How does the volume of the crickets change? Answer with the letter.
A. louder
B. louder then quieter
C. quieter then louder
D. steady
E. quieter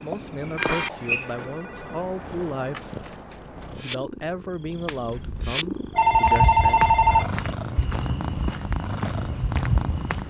E.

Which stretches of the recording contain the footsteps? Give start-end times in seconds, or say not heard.
6.0-10.2.